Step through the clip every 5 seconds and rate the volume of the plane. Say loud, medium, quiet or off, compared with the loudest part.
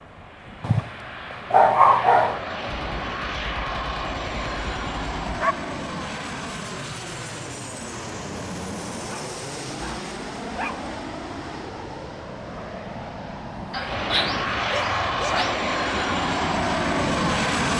medium, medium, medium, loud.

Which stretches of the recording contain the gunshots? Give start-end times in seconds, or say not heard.
2.6-5.5.